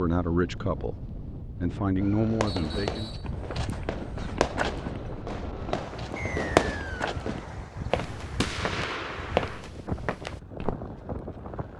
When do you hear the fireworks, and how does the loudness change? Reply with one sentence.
The fireworks can be heard from 2.0 to 9.7 s, getting louder then quieter.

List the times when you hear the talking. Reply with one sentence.
You can hear the talking from 0.0 to 3.1 s.